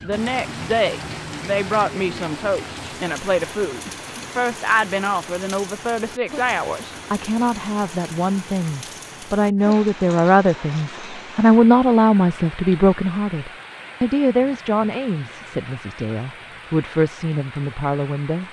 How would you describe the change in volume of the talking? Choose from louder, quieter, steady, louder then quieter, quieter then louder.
louder then quieter.